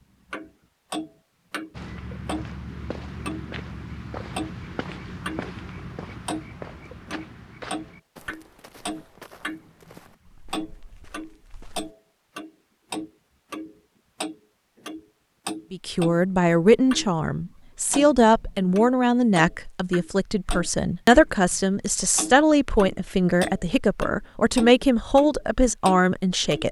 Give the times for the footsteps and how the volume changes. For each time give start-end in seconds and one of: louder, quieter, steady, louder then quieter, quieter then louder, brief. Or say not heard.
1.7-11.9 quieter.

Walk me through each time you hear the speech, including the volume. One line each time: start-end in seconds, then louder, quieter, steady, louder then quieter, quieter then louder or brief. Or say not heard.
15.7-26.6 steady.